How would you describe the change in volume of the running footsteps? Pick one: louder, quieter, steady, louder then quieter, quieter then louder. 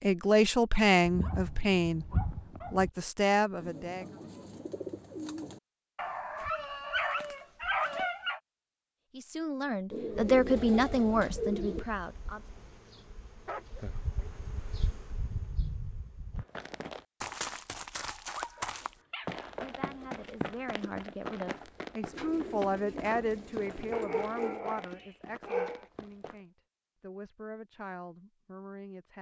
quieter.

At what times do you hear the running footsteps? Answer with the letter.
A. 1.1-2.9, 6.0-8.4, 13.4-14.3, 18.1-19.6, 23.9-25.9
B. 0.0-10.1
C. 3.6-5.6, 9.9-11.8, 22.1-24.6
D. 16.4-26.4
D.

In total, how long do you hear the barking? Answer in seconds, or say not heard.
9 s.